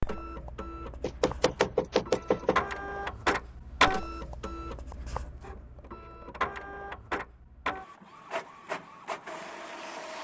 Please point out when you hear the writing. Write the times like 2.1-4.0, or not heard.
not heard.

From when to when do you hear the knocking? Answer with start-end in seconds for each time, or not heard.
1.0-2.6.